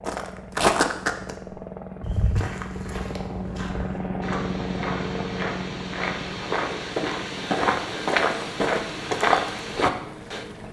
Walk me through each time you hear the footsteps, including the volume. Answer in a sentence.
The footsteps can be heard briefly from 0.1 to 1.4 s; and from 2.0 to 10.4 s, getting louder.